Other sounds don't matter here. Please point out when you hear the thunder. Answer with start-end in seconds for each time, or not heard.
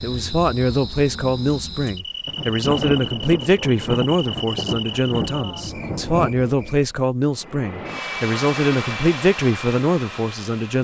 2.2-6.3.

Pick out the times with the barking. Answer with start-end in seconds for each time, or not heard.
not heard.